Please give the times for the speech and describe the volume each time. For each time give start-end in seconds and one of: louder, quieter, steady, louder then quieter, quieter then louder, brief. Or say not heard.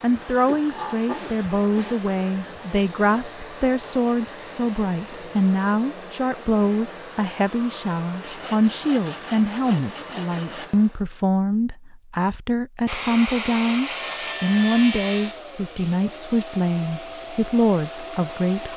0.0-18.7 steady.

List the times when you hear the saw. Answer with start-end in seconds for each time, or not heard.
0.5-2.1, 8.2-10.7, 12.8-15.4.